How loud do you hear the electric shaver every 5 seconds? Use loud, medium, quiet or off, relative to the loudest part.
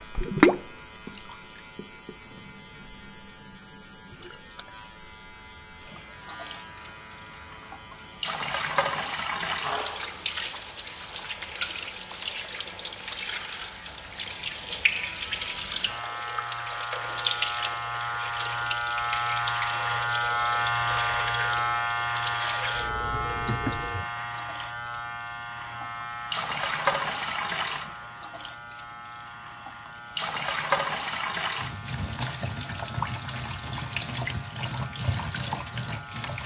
quiet, quiet, quiet, loud, loud, medium, quiet, quiet.